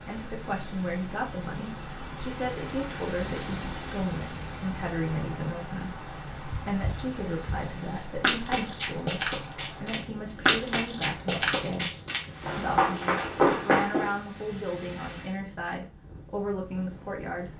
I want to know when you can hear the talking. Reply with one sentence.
You can hear the talking from 0.1 to 11.9 s and from 12.6 to 17.5 s.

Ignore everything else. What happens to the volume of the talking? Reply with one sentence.
The loudness of the talking stays about the same.